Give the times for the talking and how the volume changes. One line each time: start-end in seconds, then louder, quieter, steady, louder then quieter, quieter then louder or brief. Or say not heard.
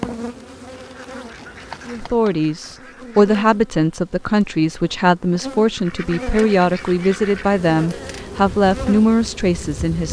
1.9-10.0 steady.